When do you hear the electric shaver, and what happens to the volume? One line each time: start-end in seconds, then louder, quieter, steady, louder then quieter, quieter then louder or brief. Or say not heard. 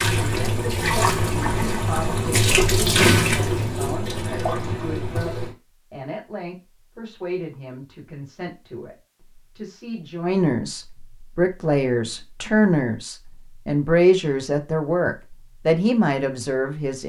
not heard.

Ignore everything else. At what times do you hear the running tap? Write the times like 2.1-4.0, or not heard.
0.0-5.5.